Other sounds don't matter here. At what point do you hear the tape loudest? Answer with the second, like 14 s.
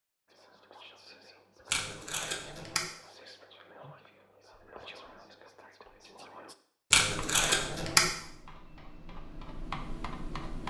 8 s.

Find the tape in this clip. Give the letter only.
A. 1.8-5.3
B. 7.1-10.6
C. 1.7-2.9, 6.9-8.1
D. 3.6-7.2
C.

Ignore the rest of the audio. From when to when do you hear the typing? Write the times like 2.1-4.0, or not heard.
7.1-10.6.